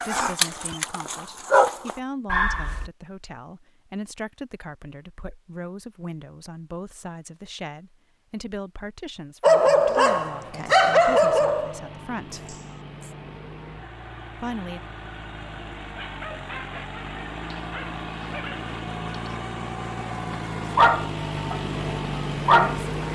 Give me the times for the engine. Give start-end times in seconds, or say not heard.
9.7-23.1.